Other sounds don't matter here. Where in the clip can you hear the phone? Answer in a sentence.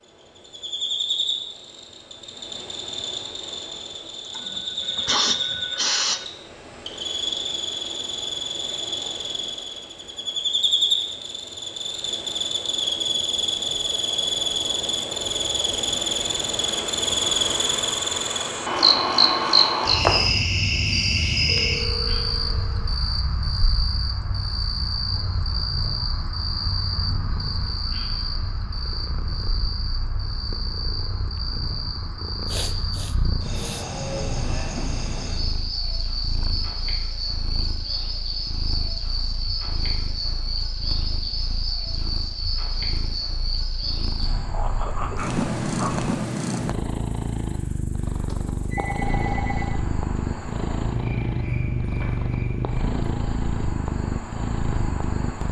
The phone can be heard from 4.3 to 6.3 s, from 21.4 to 22.9 s and from 48.2 to 49.8 s.